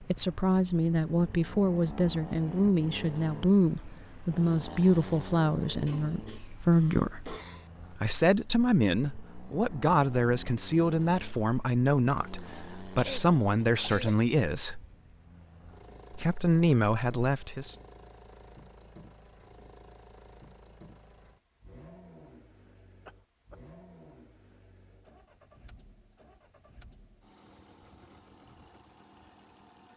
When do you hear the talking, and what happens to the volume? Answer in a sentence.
You can hear the talking from 0.1 to 14.8 s, at a steady volume; and briefly from 16.1 to 17.8 s.